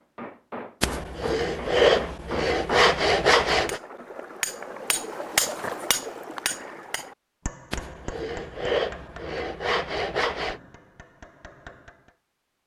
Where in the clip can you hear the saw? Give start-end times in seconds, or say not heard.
0.8-3.8, 7.7-10.6.